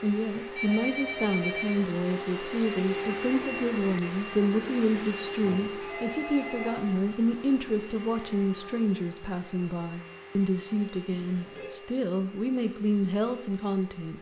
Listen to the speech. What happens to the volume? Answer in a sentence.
The loudness of the speech stays about the same.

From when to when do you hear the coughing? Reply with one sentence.
You can't hear the coughing here.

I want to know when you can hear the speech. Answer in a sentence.
The speech can be heard from 0.0 to 14.1 s.